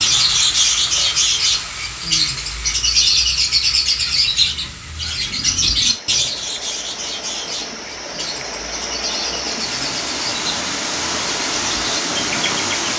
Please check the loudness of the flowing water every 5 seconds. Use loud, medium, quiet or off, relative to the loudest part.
medium, medium, loud.